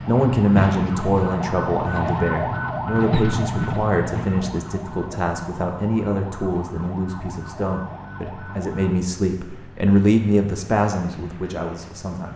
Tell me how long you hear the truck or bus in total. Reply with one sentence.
You can hear the truck or bus for 12 seconds altogether.